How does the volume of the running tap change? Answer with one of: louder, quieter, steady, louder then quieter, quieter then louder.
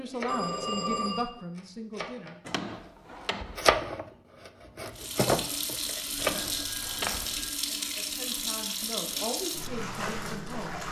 steady.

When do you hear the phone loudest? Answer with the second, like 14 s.
1 s.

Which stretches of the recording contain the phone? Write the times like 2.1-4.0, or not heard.
0.2-1.3, 6.2-7.5.